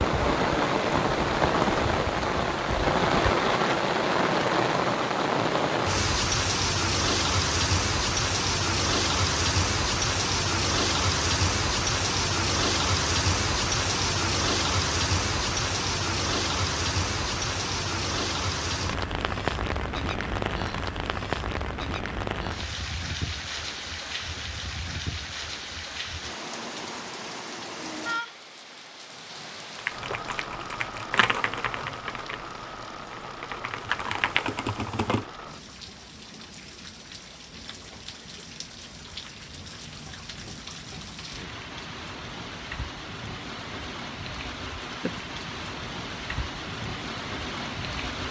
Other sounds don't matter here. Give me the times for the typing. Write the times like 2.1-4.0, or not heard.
29.8-35.2.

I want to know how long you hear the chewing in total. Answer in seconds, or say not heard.
not heard.